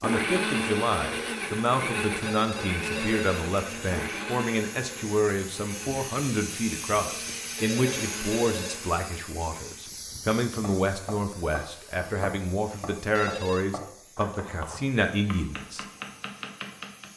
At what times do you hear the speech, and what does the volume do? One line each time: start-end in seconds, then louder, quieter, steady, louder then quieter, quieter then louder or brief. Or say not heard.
0.0-15.8 steady.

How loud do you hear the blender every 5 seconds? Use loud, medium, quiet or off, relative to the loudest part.
loud, medium, off, off.